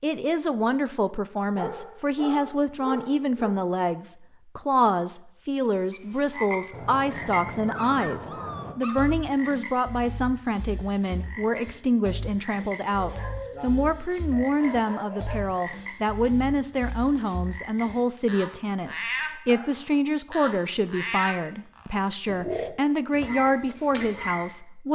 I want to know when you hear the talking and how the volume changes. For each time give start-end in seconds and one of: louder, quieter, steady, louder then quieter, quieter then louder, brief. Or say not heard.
0.0-24.9 steady.